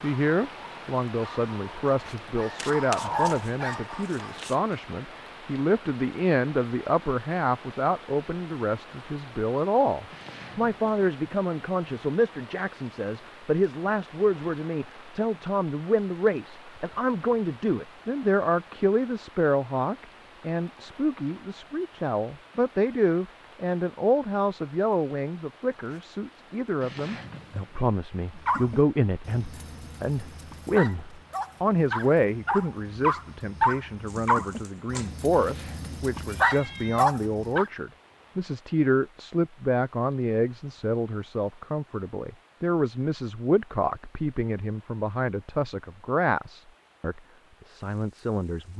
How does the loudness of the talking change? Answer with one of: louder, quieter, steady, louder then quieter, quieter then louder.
steady.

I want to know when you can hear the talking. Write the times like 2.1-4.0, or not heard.
0.0-48.7.